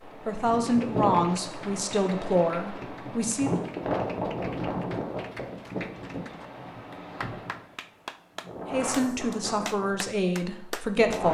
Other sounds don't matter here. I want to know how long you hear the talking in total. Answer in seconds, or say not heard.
6 s.